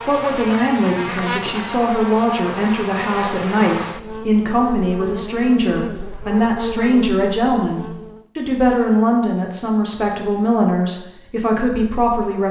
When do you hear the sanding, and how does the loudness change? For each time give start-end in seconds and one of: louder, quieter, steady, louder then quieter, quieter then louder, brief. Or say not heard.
not heard.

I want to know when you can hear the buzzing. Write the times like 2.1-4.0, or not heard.
0.0-8.2.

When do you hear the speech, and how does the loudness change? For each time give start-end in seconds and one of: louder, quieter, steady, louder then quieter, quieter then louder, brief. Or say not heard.
0.1-12.4 steady.